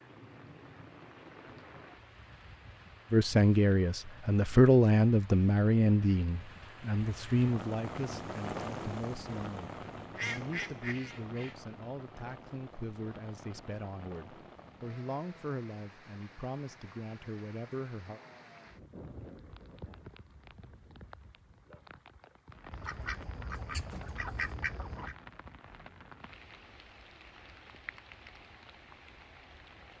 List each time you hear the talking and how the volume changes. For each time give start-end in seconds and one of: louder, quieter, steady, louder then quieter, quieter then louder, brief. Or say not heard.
3.1-18.2 quieter.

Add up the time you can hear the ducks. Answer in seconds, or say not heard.
4 s.